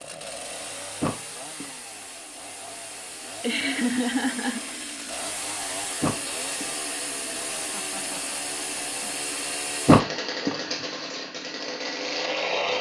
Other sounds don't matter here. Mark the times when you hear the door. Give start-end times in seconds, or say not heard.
1.0-1.7, 6.0-6.7, 9.8-10.6.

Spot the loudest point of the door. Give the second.
10 s.